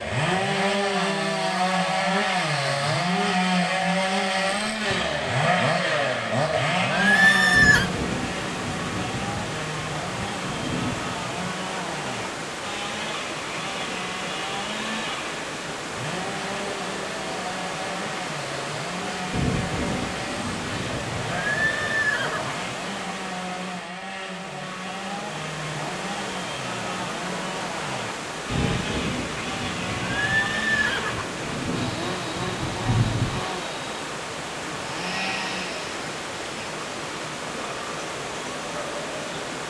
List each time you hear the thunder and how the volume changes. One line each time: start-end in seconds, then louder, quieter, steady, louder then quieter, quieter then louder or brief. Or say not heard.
7.5-11.6 quieter then louder
19.3-22.1 brief
28.4-33.5 quieter then louder.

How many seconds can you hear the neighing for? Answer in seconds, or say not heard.
3 s.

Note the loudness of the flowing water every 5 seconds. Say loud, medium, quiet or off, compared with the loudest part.
medium, loud, loud, loud, loud, loud, loud, loud.